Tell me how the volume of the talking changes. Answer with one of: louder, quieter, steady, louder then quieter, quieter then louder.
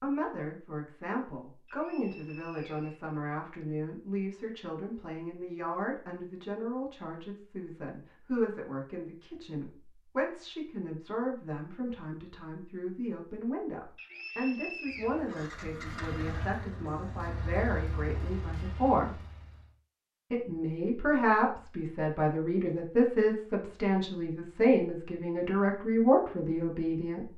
louder.